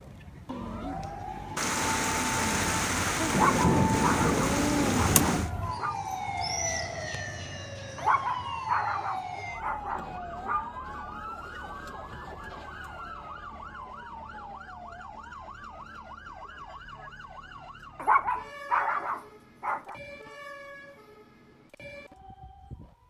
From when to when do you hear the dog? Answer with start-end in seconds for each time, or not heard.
3.3-6.0, 8.0-10.7, 17.9-19.9.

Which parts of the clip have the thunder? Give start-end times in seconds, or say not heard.
1.6-5.5.